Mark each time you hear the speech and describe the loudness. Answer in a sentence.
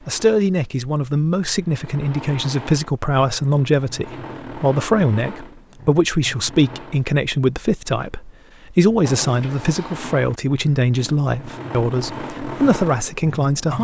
The speech can be heard from 0.1 to 13.7 s, at a steady volume.